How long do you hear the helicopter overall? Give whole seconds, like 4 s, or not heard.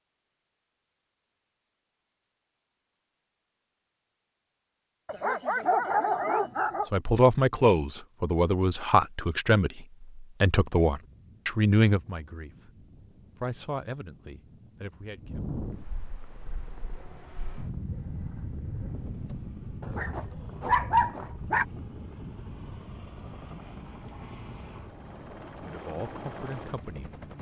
11 s.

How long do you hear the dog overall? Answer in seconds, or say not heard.
4 s.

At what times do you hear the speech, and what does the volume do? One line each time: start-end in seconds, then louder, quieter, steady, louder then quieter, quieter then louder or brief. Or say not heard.
6.9-15.4 quieter
25.6-27.2 brief.